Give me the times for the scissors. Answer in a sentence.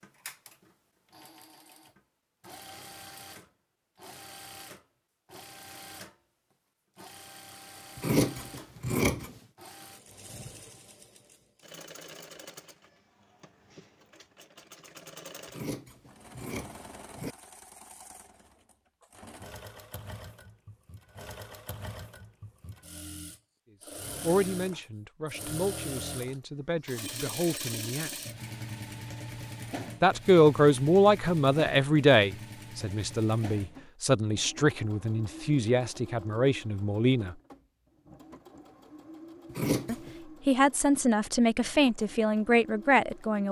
The scissors can be heard from 8.0 to 9.3 s, from 15.4 to 17.4 s and from 39.5 to 40.1 s.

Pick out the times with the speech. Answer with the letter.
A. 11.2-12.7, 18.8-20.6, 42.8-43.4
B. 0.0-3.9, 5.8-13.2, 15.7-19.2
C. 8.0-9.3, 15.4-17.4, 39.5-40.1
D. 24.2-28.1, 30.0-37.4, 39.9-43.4
D.